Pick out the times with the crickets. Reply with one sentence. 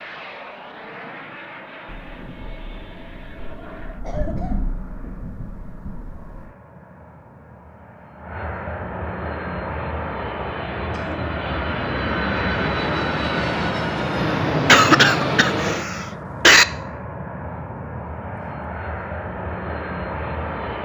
You can't hear the crickets here.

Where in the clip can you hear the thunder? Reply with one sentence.
The thunder can be heard from 1.9 to 6.5 s.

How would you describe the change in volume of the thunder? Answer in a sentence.
The volume of the thunder goes up, then down.